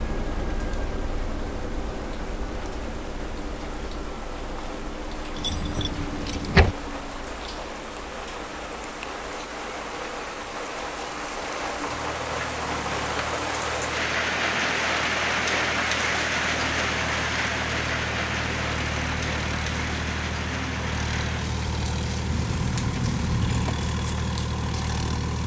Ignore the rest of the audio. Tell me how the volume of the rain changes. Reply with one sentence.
The volume of the rain goes up, then down.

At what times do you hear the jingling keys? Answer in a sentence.
You can hear the jingling keys from 5.3 to 6.8 s and from 22.3 to 23.9 s.